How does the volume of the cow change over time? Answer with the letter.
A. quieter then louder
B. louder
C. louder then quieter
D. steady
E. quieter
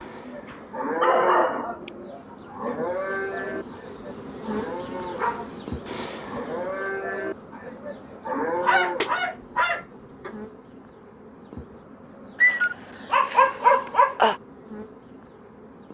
A.